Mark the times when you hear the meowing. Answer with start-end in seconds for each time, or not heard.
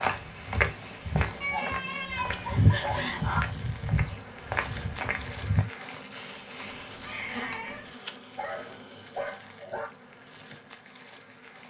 1.4-3.4, 6.6-7.9.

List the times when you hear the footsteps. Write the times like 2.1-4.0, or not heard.
0.0-5.7.